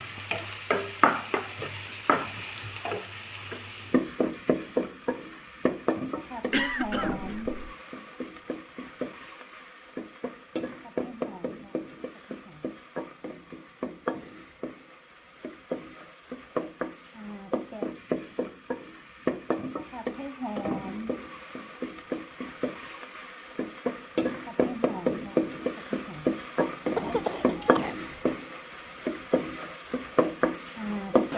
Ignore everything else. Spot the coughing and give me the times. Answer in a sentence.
You can hear the coughing from 6.5 to 7.6 s and from 26.9 to 28.4 s.